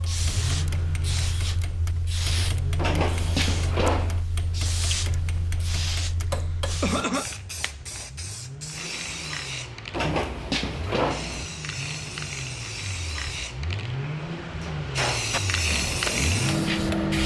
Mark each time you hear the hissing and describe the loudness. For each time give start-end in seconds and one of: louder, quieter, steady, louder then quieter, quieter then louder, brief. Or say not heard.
0.0-17.2 louder.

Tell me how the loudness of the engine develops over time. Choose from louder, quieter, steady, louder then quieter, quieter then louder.
quieter then louder.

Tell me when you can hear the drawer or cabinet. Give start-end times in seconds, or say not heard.
2.8-4.2, 9.9-11.5.